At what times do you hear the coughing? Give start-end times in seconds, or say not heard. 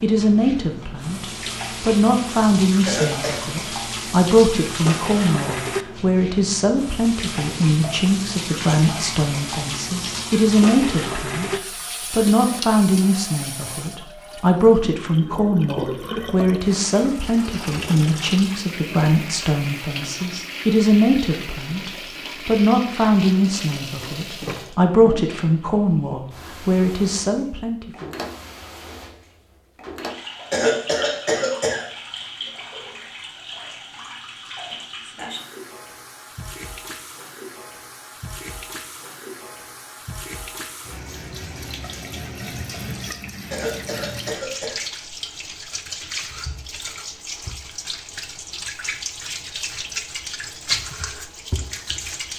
2.9-3.5, 30.5-31.9, 43.5-44.8.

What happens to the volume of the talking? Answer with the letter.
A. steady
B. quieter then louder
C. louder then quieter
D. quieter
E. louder
A.